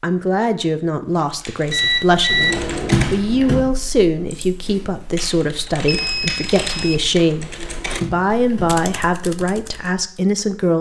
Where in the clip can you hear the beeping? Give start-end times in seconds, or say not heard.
1.7-2.6, 5.8-7.0.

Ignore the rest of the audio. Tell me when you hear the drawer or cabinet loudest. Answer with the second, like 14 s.
3 s.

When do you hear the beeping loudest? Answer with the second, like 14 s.
2 s.